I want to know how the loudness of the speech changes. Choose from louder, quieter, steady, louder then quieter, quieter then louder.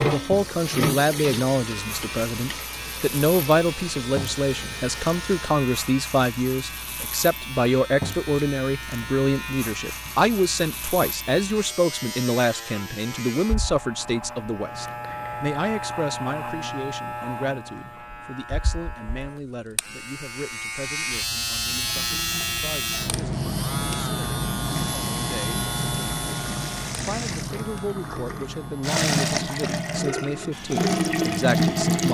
quieter then louder.